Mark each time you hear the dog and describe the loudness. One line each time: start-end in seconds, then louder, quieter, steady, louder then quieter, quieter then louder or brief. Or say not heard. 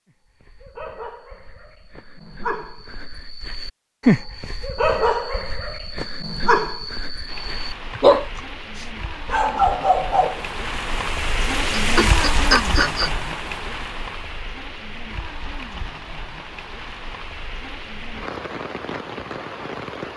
0.4-10.4 louder.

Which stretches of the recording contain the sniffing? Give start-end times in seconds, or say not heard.
11.8-13.1.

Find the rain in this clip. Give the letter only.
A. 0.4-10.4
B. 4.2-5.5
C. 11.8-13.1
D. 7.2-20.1
D.